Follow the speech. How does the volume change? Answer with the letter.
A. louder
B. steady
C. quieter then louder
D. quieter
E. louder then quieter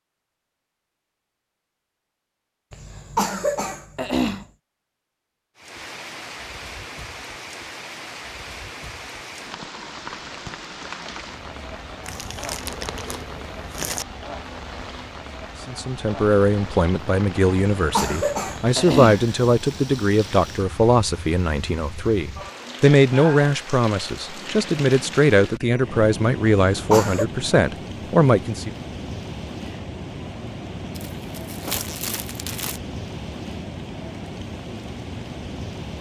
B.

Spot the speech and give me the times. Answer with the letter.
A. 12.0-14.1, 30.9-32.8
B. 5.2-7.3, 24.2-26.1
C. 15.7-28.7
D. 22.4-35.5
C.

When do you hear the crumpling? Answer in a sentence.
You can hear the crumpling from 12.0 to 14.1 s and from 30.9 to 32.8 s.